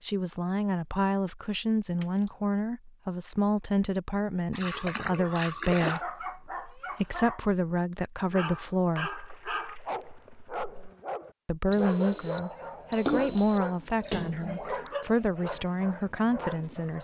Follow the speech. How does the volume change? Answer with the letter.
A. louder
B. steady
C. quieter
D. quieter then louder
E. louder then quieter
B.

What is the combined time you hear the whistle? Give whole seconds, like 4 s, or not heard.
2 s.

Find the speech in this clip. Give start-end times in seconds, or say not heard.
0.0-9.2, 11.4-17.0.